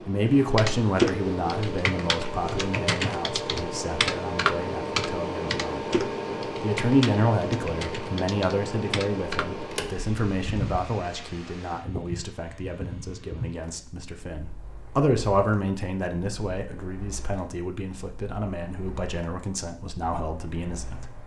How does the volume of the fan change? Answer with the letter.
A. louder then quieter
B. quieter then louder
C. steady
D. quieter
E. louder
D.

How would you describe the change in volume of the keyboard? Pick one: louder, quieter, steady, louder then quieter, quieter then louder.
quieter.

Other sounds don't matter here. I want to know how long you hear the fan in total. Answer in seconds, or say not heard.
21 s.